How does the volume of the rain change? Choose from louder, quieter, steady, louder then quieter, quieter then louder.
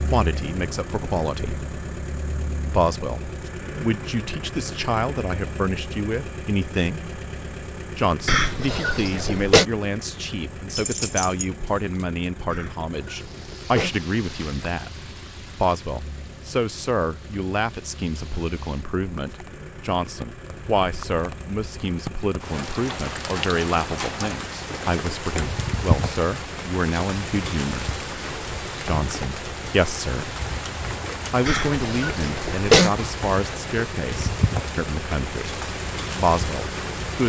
louder.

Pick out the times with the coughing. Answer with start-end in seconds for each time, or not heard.
8.2-9.7, 12.5-13.9, 31.4-32.9.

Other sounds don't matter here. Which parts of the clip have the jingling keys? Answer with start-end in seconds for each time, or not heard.
10.8-11.4.